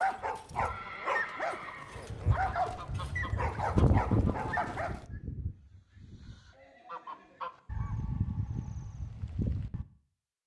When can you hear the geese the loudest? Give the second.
4 s.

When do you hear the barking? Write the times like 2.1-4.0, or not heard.
0.0-5.0.